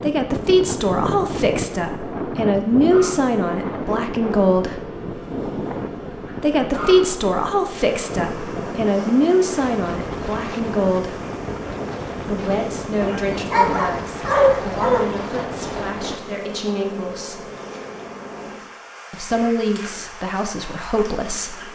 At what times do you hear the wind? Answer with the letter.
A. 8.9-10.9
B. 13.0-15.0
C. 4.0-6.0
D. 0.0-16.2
D.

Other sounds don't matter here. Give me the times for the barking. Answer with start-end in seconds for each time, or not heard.
13.0-15.0.